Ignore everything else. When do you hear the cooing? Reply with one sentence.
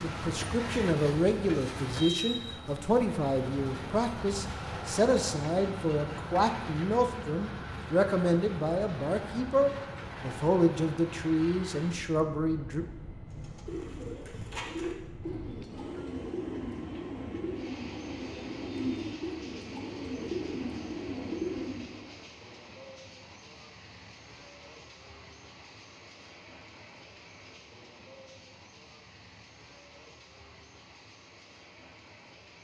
You can hear the cooing from 13.2 to 22.1 s.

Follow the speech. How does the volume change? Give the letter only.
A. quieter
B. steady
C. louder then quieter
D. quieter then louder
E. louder
B.